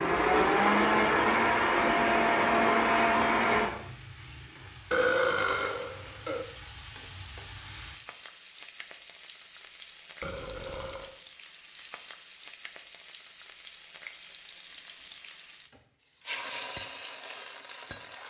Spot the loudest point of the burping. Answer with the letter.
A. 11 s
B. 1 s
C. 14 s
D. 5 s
D.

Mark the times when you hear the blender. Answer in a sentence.
The blender can be heard from 0.0 to 3.7 s.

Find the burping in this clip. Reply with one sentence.
The burping can be heard from 4.9 to 6.5 s and from 10.2 to 11.2 s.